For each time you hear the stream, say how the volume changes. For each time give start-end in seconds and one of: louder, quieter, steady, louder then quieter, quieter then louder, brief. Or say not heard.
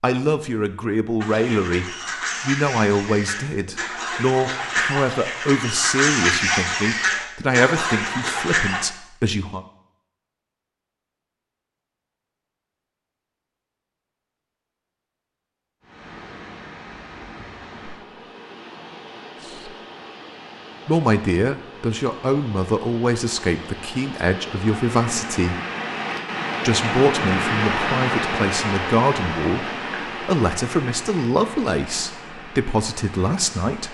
15.8-33.8 louder then quieter.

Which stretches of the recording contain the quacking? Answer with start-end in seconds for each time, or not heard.
1.2-8.8.